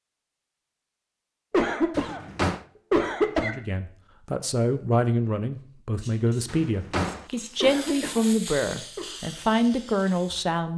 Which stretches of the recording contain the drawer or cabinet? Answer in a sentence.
You can hear the drawer or cabinet from 1.9 to 2.6 s and from 6.5 to 7.2 s.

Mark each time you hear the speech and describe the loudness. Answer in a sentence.
You can hear the speech from 3.4 to 10.7 s, at a steady volume.